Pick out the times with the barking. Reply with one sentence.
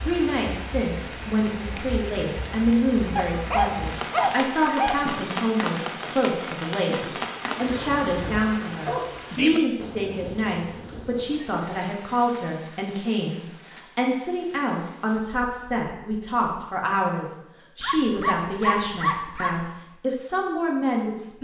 You can hear the barking from 3.1 to 5.0 s, from 8.8 to 9.6 s and from 17.8 to 19.6 s.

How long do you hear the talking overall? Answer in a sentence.
You can hear the talking for 21 seconds altogether.